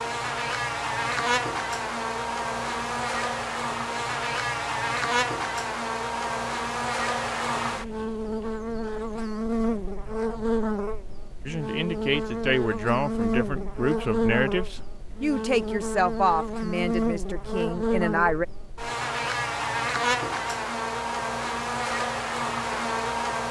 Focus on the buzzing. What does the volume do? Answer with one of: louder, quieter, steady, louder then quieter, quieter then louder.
steady.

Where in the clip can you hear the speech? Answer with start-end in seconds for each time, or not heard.
11.4-18.4.